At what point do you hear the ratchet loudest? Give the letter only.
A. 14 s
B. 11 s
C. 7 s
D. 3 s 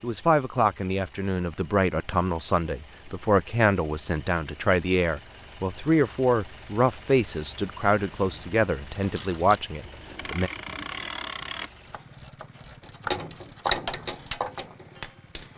A.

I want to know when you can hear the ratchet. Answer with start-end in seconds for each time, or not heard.
8.9-15.5.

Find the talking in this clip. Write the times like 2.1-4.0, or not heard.
0.0-10.5.